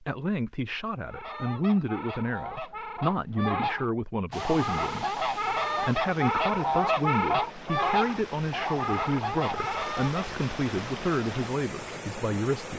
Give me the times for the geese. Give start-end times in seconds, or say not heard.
1.1-10.3.